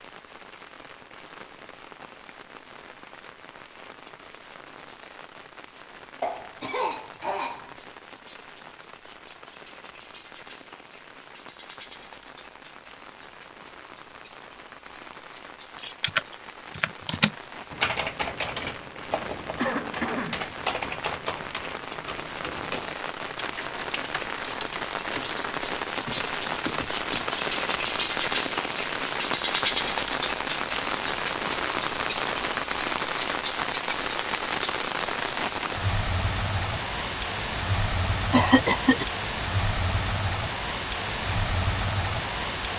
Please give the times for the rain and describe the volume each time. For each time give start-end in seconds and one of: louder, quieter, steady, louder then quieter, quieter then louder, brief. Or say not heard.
0.0-42.7 louder.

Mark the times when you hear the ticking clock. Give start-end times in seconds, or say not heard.
not heard.